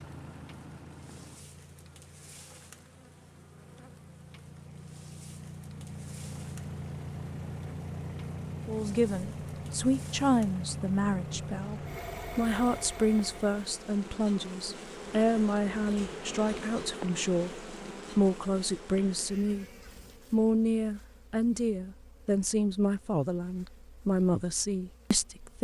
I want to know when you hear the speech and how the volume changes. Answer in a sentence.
The speech can be heard from 8.7 to 19.6 s, at a steady volume; and from 20.3 to 25.6 s, at a steady volume.